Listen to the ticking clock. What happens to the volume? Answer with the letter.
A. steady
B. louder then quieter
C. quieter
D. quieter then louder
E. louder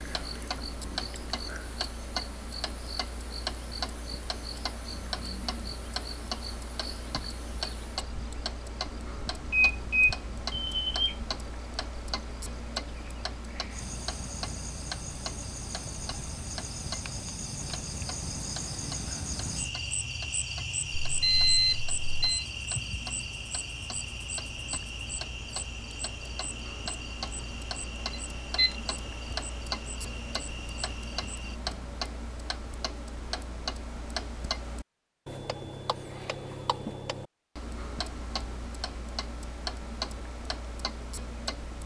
D.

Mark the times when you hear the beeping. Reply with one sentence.
You can hear the beeping from 9.5 to 11.2 s, from 21.1 to 22.4 s and from 28.1 to 28.8 s.